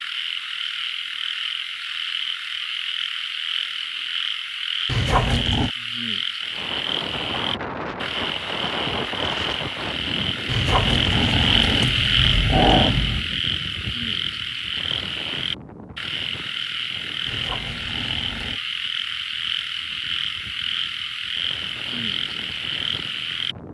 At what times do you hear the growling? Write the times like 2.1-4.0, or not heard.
4.8-5.7, 10.4-13.2, 17.2-18.6.